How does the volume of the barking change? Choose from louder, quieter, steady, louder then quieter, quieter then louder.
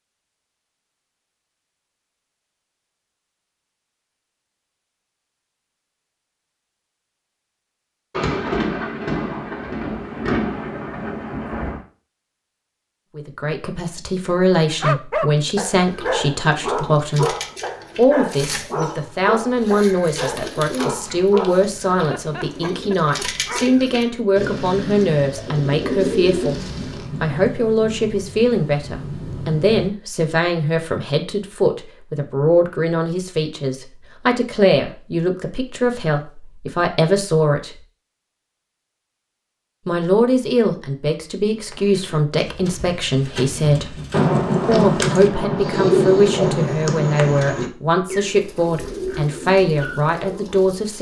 quieter.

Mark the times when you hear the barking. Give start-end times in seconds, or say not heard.
14.7-23.8.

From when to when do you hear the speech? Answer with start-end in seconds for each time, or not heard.
13.2-17.4, 17.9-26.6, 27.2-37.8, 39.9-44.0, 44.6-50.9.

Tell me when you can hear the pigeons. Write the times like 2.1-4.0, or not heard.
15.8-27.1, 41.5-50.9.